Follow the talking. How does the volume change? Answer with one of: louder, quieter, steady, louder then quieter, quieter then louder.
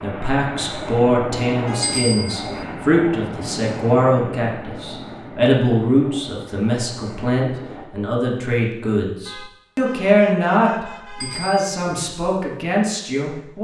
steady.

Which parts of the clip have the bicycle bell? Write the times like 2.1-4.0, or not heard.
1.8-2.6, 11.2-12.1.